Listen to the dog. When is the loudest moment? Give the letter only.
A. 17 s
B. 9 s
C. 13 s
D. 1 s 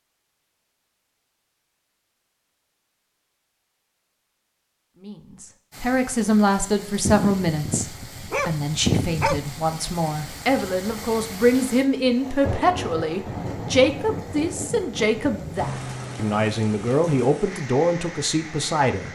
B.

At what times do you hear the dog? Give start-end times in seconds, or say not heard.
7.0-9.4.